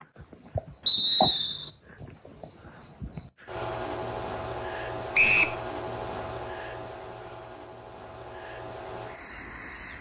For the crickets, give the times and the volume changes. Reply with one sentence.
You can hear the crickets from 0.0 to 9.9 s, getting quieter.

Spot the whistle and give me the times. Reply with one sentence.
The whistle can be heard from 0.8 to 1.7 s and from 5.1 to 5.5 s.